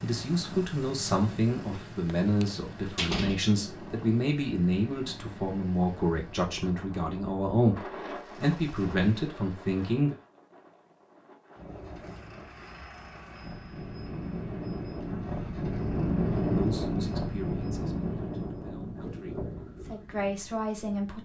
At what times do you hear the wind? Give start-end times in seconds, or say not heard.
0.0-21.1.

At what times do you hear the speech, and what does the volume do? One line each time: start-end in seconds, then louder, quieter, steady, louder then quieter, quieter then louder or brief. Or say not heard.
0.0-10.2 steady
16.6-21.1 quieter then louder.